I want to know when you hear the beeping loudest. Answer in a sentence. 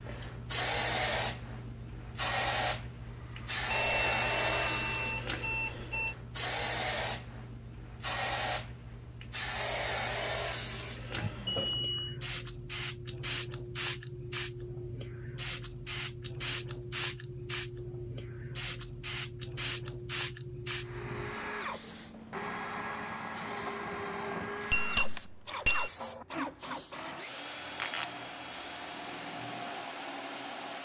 The loudest moment of the beeping is at 25 seconds.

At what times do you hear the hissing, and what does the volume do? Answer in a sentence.
The hissing can be heard from 0.0 to 30.8 s, getting quieter.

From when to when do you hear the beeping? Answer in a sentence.
You can hear the beeping from 3.6 to 6.2 s, from 11.2 to 12.2 s and from 24.7 to 25.9 s.